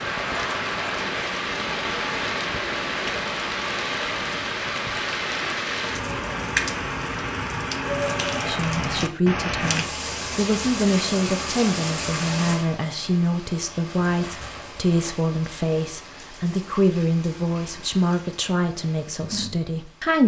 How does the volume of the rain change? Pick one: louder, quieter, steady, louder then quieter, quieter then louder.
quieter.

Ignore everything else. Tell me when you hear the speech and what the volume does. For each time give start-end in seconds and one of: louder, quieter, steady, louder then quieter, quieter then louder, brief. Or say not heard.
8.4-20.2 steady.